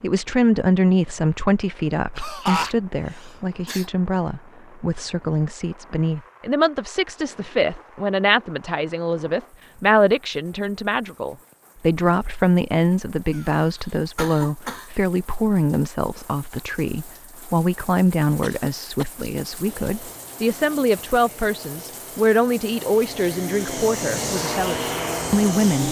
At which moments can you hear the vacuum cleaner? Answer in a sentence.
You can hear the vacuum cleaner from 19.6 to 25.8 s.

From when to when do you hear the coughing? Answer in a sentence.
You can hear the coughing from 2.1 to 3.9 s, from 13.3 to 14.9 s and from 18.4 to 19.2 s.